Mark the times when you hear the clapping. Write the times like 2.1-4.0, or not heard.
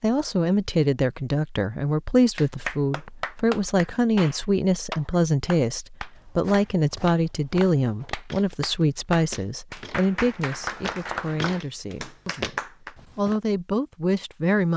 2.4-12.9.